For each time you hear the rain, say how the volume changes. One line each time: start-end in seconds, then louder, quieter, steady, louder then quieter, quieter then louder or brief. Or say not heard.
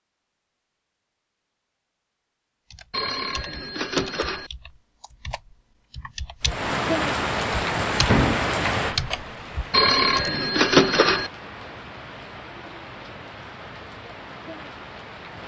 6.4-15.4 quieter.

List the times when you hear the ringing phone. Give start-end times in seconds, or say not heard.
2.9-4.5, 9.7-11.3.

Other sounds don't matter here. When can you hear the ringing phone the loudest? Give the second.
11 s.